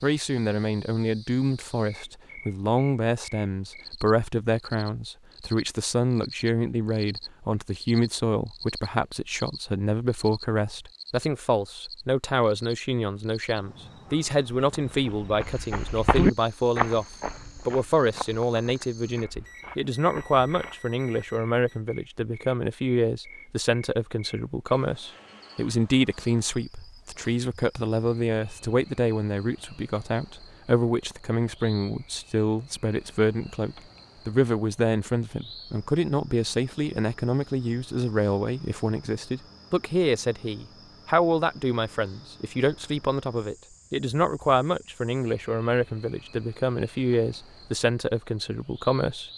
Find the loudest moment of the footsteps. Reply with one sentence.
The volume of the footsteps peaks at 16 seconds.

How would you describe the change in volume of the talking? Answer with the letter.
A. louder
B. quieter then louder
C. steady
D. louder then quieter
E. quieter
C.